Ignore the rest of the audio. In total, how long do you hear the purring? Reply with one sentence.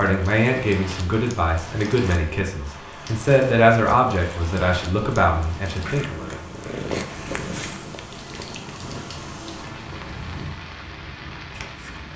The purring can be heard for 7 seconds in total.